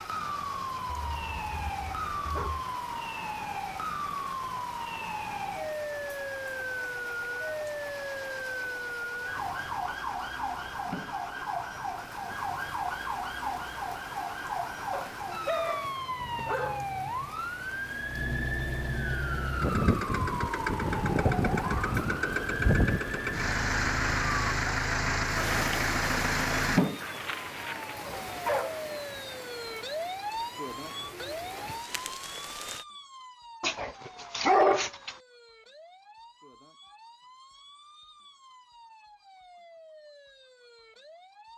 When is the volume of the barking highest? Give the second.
35 s.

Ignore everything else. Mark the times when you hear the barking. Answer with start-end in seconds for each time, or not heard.
0.8-2.6, 14.9-16.9, 27.0-28.8, 33.6-35.1.